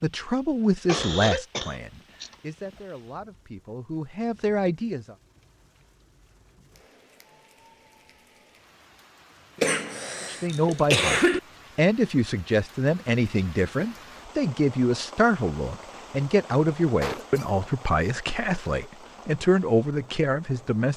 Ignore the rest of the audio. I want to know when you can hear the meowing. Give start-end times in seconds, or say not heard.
not heard.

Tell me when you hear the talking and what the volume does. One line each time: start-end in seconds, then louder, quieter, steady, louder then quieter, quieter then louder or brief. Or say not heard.
0.0-5.2 quieter then louder
10.3-20.9 steady.